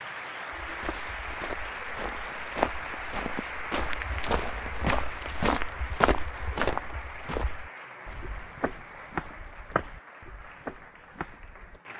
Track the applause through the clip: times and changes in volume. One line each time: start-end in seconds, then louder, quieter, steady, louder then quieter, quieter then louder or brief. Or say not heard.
0.0-11.9 quieter.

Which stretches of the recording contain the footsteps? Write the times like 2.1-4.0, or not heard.
0.6-11.8.